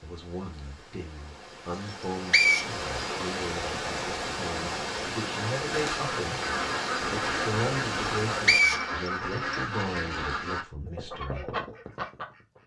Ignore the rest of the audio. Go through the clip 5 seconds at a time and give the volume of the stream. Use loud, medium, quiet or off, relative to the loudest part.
loud, loud, off.